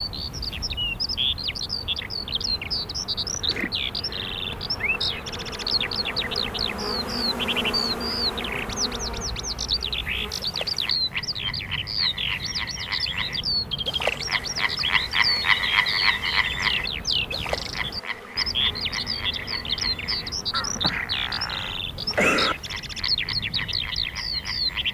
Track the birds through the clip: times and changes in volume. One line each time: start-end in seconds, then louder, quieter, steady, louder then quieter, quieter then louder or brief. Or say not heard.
0.0-24.8 steady.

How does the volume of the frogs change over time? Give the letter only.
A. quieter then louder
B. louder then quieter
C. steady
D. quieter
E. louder
B.